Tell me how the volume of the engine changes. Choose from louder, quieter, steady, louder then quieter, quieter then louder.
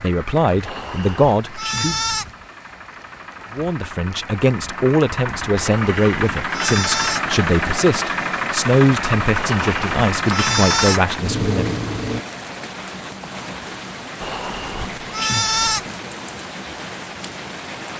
louder.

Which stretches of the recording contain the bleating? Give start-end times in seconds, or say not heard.
0.6-2.3, 5.6-7.2, 9.3-11.1, 14.2-15.8.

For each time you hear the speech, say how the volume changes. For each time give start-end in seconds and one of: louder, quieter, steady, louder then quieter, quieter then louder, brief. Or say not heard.
0.0-2.0 brief
3.5-11.8 steady.